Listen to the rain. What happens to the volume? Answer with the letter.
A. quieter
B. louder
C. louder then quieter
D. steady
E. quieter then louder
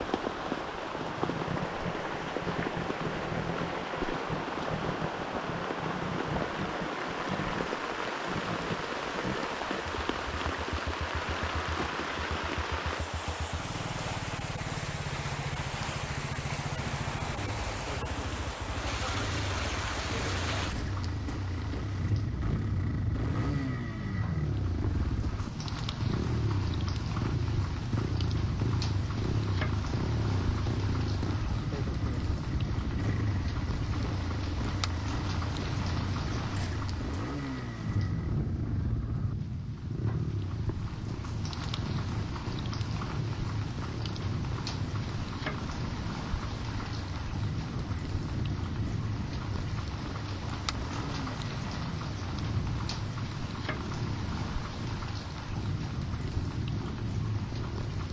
D.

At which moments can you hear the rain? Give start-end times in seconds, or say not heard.
0.0-58.0.